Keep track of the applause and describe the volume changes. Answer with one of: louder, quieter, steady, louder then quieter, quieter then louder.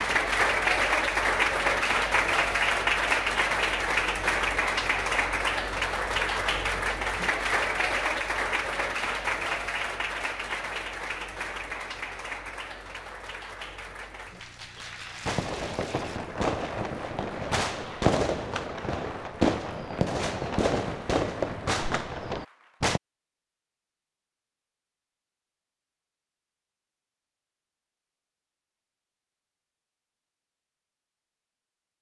quieter.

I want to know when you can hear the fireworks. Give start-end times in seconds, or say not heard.
15.2-23.0.